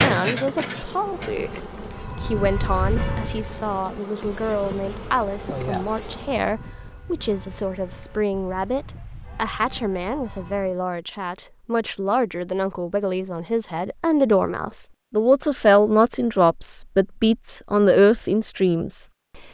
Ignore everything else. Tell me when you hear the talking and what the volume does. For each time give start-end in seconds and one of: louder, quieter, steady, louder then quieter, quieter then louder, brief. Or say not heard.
0.0-1.5 brief
2.1-19.5 louder.